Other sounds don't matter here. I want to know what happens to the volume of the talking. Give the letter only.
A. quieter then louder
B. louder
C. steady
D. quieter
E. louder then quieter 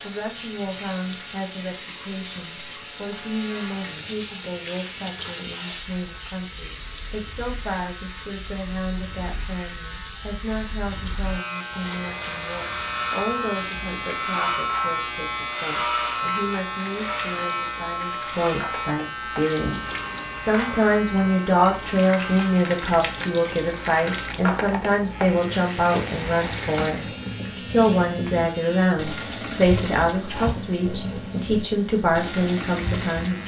B.